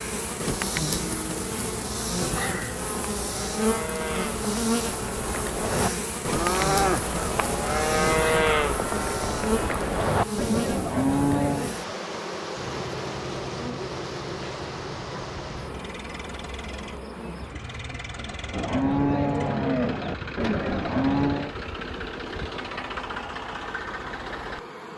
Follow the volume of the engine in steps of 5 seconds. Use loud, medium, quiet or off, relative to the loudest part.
off, off, loud, medium, loud.